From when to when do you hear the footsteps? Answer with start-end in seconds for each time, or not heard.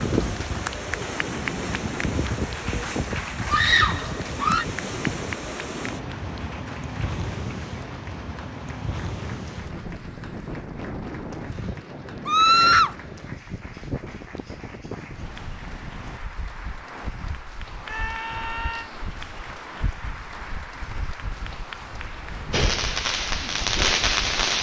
not heard.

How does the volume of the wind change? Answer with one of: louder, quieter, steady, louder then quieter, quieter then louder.
quieter.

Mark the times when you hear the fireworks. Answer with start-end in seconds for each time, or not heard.
22.5-24.5.